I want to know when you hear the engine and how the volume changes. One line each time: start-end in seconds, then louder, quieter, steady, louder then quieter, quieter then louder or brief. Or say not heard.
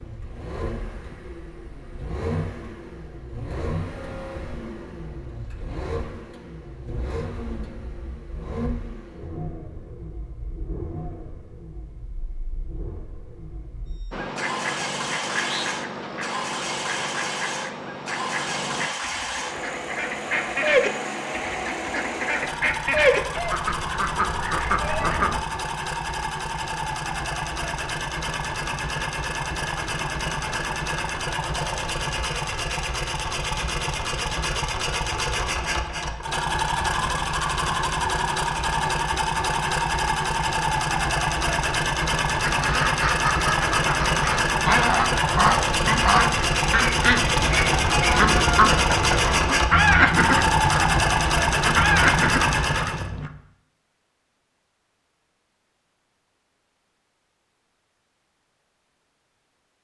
0.0-53.0 louder.